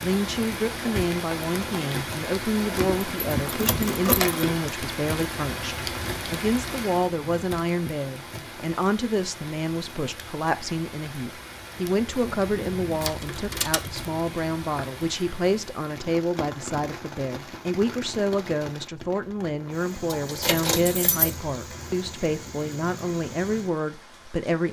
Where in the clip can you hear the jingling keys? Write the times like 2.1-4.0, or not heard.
2.9-4.5, 13.0-14.0, 20.1-21.4.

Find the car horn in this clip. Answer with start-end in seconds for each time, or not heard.
not heard.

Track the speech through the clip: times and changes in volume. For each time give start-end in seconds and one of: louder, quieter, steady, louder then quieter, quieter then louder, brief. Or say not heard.
0.0-24.6 steady.